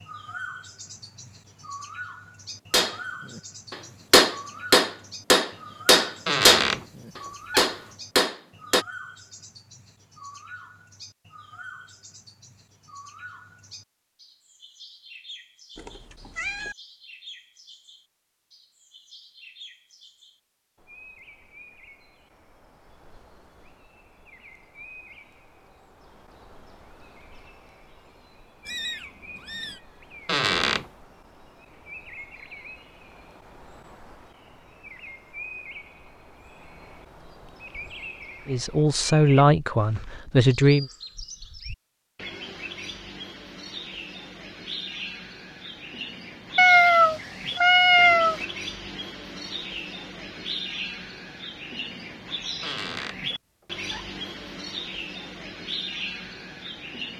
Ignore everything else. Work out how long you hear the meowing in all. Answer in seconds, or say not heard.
4 s.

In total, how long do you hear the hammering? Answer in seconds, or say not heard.
6 s.